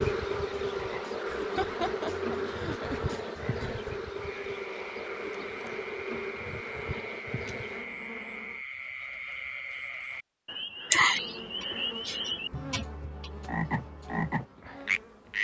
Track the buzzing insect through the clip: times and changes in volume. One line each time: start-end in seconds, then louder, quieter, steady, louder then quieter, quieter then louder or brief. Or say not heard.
0.0-8.6 quieter
10.9-15.3 steady.